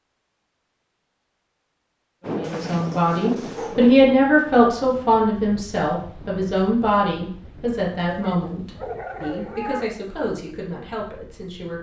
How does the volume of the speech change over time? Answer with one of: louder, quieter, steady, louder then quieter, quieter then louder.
quieter.